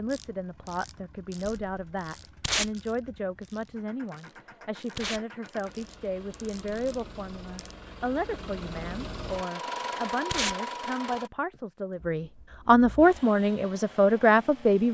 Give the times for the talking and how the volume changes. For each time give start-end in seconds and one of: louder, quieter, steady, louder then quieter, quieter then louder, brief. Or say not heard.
0.0-14.8 louder.